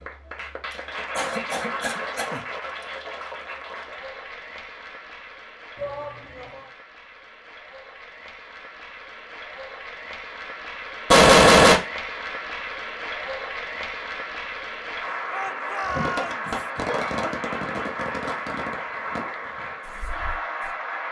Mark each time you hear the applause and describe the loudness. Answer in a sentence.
The applause can be heard from 0.0 to 21.0 s, getting quieter then louder.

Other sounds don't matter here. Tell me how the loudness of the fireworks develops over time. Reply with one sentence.
The loudness of the fireworks goes down.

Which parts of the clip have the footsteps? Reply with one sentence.
You can't hear the footsteps here.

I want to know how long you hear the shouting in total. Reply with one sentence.
The shouting can be heard for 2 seconds in total.